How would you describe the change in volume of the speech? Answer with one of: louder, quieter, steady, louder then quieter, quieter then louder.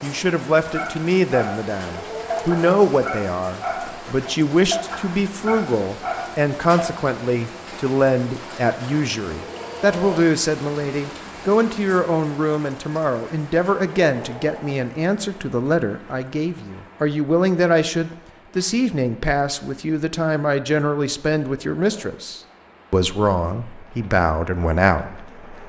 steady.